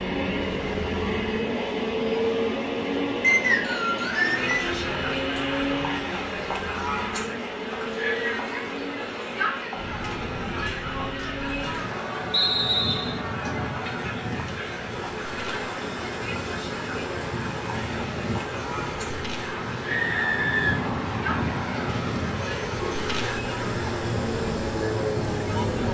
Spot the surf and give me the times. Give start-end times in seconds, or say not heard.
9.8-25.8.